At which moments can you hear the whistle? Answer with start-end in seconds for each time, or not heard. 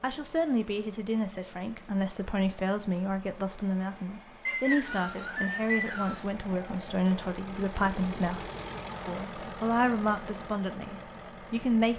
4.5-6.2.